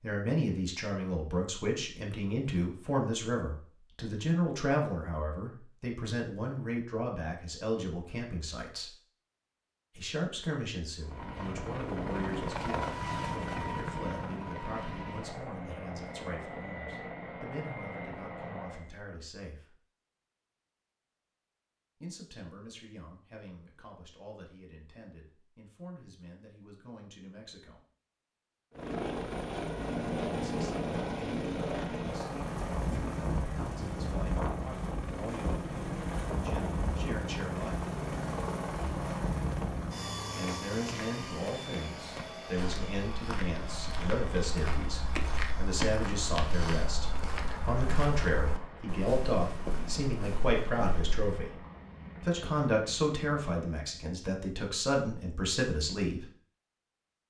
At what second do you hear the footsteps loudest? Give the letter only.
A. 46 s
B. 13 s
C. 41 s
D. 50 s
A.